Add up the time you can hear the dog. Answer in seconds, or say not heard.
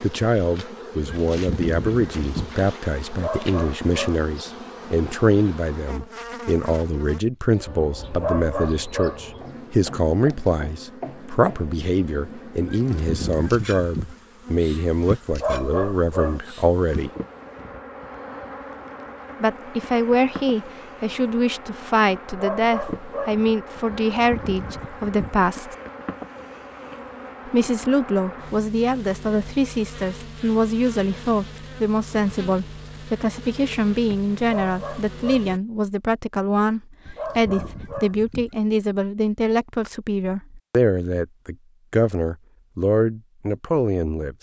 7 s.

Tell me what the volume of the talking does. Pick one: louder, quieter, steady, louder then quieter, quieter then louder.
steady.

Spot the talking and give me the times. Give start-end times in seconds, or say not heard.
0.0-17.1, 19.4-25.8, 27.4-44.3.